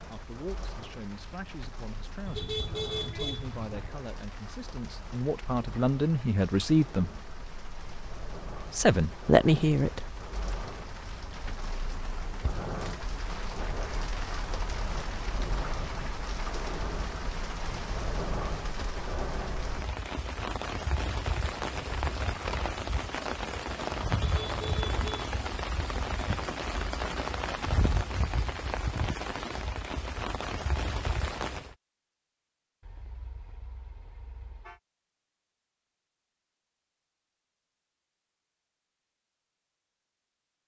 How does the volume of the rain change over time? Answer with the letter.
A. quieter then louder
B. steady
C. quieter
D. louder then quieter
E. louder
E.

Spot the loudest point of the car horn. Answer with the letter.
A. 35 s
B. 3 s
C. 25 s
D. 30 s
B.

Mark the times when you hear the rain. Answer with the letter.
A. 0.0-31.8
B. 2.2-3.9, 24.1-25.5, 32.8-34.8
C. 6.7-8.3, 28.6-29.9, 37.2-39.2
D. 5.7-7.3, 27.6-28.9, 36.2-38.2
A.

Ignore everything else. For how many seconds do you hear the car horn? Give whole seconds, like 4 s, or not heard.
5 s.